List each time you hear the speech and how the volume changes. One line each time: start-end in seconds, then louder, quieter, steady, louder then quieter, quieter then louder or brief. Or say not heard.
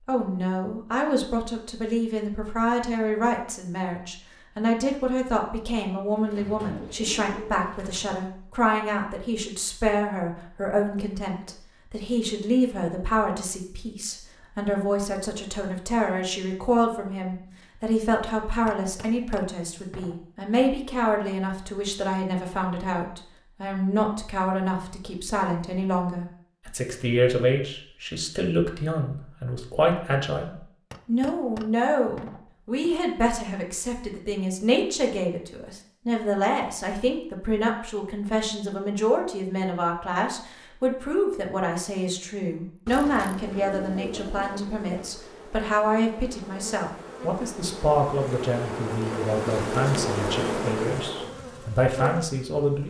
0.1-52.8 steady.